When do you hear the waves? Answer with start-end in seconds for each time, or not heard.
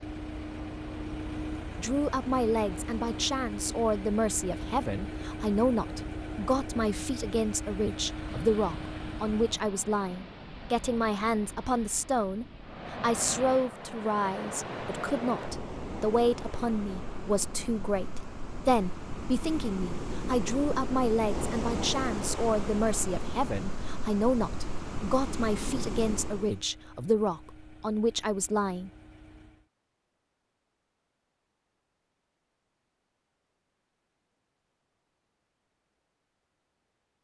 0.0-26.6.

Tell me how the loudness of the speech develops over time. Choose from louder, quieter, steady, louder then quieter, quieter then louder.
steady.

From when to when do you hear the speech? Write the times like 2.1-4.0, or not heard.
1.8-28.9.